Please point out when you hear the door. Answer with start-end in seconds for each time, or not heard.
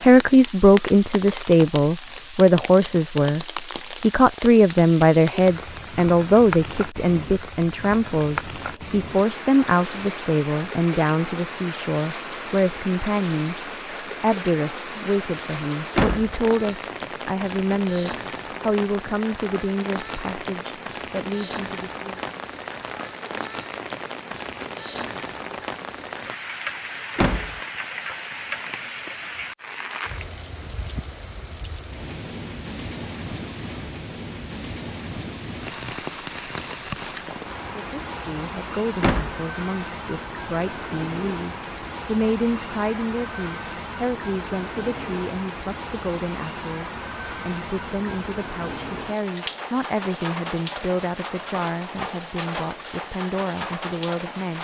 15.9-16.4, 27.1-27.6, 39.0-39.5.